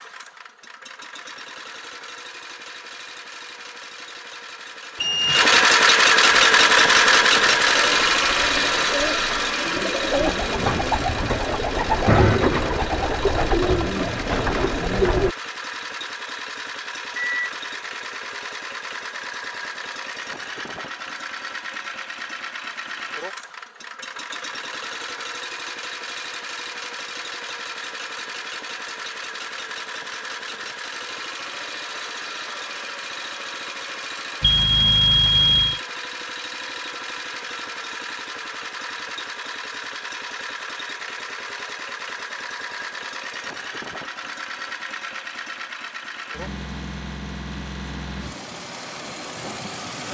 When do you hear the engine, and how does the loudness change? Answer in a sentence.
The engine can be heard from 0.0 to 50.0 s, getting quieter.